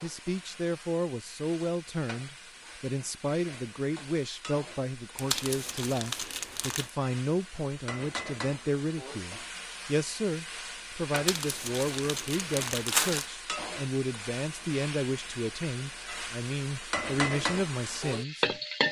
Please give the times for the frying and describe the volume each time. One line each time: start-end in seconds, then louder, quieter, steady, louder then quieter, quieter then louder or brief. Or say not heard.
0.0-18.8 louder.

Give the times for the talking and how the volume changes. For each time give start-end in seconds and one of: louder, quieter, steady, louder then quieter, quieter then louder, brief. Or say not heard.
0.0-18.6 steady.